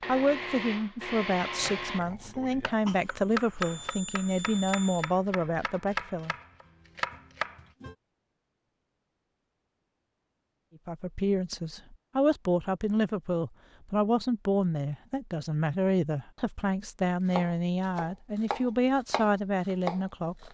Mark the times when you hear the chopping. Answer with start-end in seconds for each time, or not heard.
1.6-8.0, 17.3-20.5.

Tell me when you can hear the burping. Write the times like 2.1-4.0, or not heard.
not heard.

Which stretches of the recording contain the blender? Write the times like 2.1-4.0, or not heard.
0.0-2.0.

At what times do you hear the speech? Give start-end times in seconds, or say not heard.
0.1-6.3, 10.8-20.5.